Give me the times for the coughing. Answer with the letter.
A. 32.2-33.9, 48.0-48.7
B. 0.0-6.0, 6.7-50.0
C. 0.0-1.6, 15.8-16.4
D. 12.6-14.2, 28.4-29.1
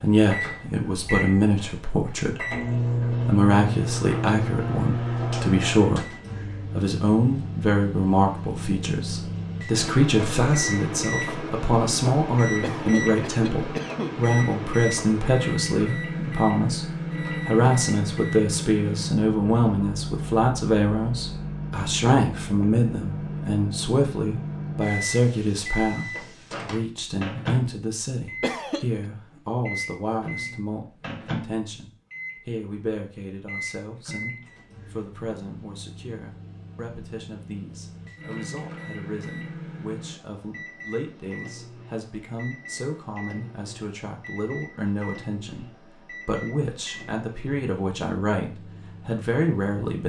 D.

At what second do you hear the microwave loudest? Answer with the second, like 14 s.
3 s.